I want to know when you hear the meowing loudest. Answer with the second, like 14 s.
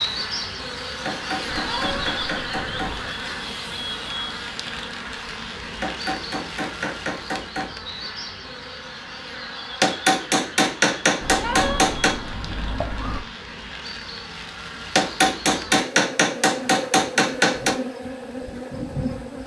12 s.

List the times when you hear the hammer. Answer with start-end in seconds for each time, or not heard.
1.1-3.1, 5.8-7.7, 9.8-12.2, 14.9-17.8.